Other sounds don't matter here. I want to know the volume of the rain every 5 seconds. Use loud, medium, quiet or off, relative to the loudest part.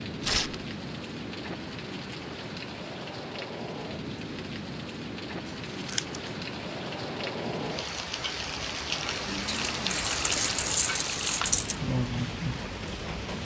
medium, loud, loud.